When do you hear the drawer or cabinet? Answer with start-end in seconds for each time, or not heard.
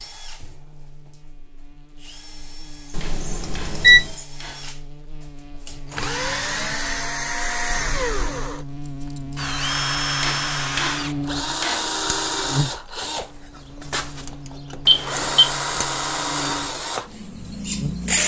not heard.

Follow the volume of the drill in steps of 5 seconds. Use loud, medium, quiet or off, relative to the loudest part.
quiet, loud, loud, loud.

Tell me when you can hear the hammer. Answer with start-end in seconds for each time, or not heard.
3.0-4.8, 10.2-12.1.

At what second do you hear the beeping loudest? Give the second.
4 s.